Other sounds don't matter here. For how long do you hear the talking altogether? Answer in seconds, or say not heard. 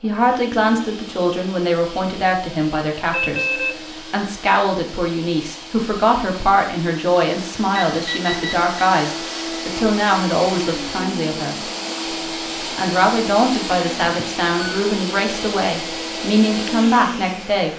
16 s.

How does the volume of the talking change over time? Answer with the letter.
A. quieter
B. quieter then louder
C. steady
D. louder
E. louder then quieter
C.